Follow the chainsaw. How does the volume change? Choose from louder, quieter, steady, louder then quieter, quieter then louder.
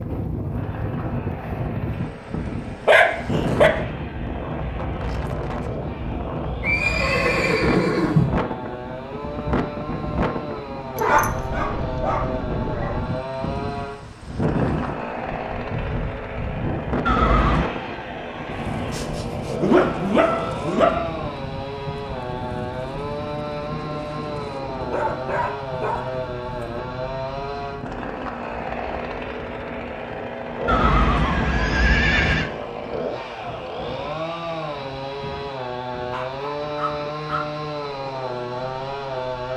louder.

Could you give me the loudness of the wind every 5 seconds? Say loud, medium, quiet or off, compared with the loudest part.
loud, loud, loud, loud, medium, medium, quiet, quiet.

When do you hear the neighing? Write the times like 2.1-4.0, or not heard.
6.6-8.4, 17.1-17.7, 30.6-32.5.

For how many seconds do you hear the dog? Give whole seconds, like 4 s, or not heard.
8 s.